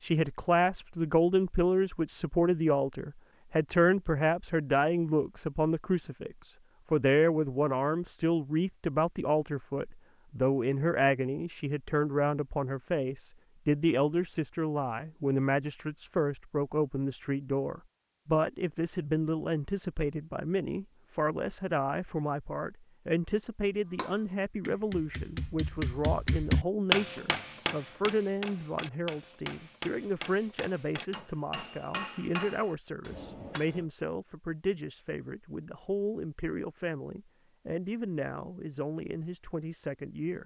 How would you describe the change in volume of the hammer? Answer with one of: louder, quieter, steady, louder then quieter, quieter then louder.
louder then quieter.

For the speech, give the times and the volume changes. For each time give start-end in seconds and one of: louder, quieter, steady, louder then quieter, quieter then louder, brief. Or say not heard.
0.0-40.4 quieter.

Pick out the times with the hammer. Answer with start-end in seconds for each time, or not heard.
23.9-33.9.